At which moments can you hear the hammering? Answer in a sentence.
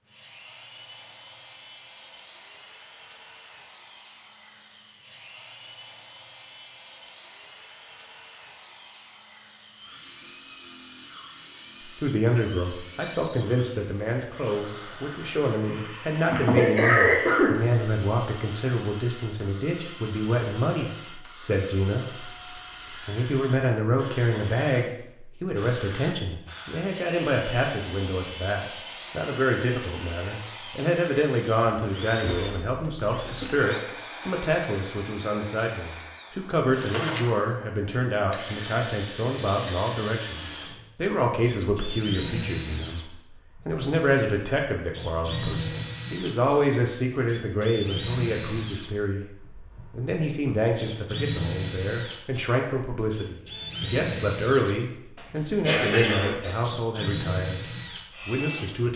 The hammering can't be heard in this clip.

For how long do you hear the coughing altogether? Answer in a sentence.
You can hear the coughing for 3 seconds altogether.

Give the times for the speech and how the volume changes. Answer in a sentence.
You can hear the speech from 11.8 to 57.6 s, at a steady volume; and briefly from 58.2 to 58.9 s.